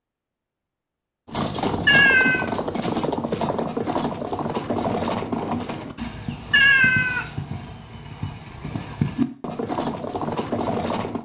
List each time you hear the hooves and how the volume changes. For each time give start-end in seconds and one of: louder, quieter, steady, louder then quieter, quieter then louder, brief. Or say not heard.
1.2-11.2 quieter then louder.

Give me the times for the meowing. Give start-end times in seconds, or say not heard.
1.9-2.5, 6.5-7.3.